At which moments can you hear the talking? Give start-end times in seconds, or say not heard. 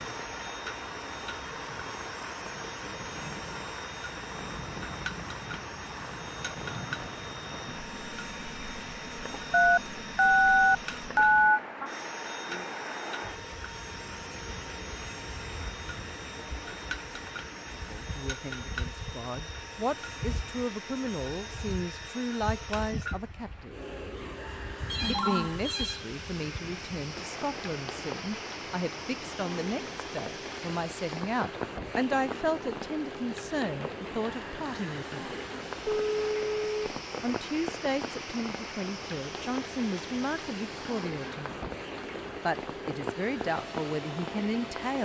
17.8-23.8, 25.1-35.4, 37.2-41.6, 42.4-45.0.